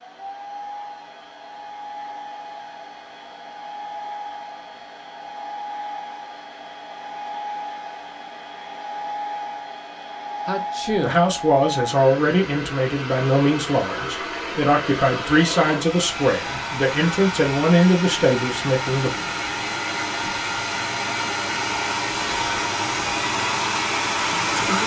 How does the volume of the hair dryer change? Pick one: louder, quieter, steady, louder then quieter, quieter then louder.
louder.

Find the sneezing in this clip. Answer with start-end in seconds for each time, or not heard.
10.4-11.2.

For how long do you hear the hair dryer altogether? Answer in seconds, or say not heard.
25 s.